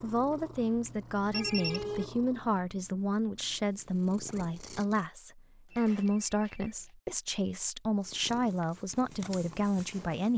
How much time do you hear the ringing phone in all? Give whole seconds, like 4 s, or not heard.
2 s.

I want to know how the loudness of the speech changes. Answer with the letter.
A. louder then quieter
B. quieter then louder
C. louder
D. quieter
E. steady
E.